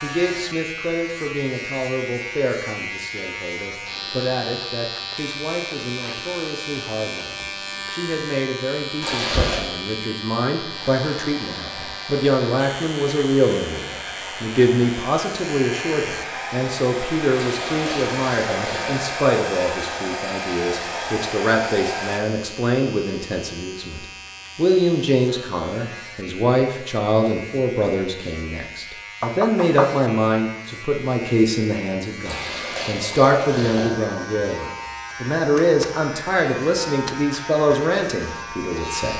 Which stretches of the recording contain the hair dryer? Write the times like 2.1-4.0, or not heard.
10.7-22.2.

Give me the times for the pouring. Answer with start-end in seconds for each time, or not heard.
9.0-9.6, 17.4-19.1, 32.2-34.0.